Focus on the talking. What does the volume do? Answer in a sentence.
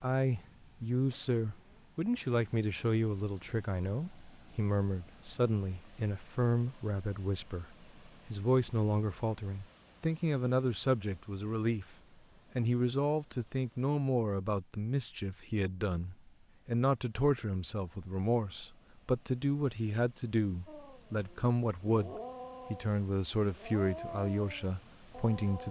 The loudness of the talking stays about the same.